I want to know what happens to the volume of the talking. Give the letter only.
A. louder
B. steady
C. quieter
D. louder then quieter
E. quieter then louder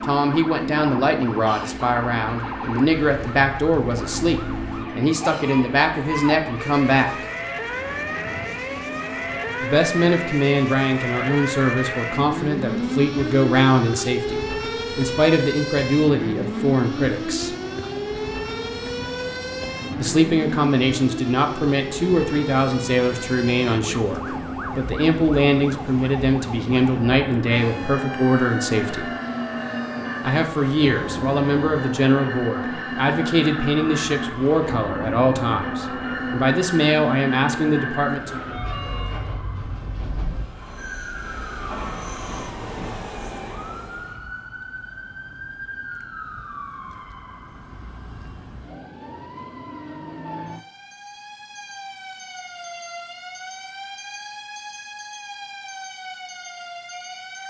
B.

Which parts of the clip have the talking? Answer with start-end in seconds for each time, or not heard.
0.0-7.1, 9.6-17.6, 19.9-29.1, 30.2-38.4.